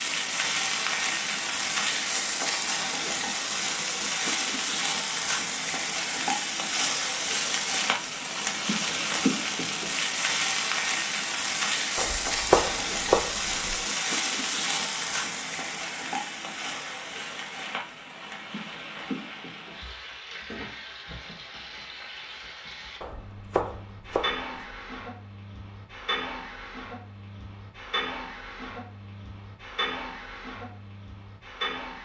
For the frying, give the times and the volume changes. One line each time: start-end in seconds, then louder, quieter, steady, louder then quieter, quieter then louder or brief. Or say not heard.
0.0-31.9 quieter.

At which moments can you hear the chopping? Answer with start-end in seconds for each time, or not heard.
11.9-13.8, 23.0-24.6.